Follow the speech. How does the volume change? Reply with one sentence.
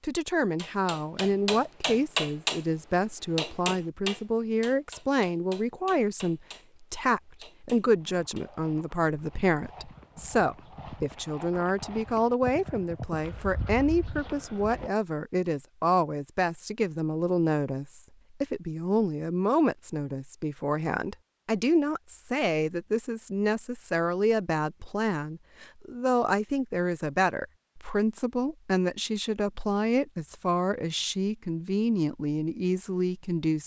The volume of the speech stays about the same.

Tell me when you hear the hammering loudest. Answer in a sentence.
The volume of the hammering peaks at 2 seconds.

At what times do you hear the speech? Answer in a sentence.
You can hear the speech from 0.0 to 33.6 s.